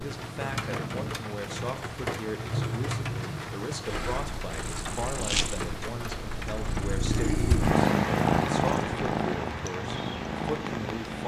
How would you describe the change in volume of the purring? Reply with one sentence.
The volume of the purring goes up, then down.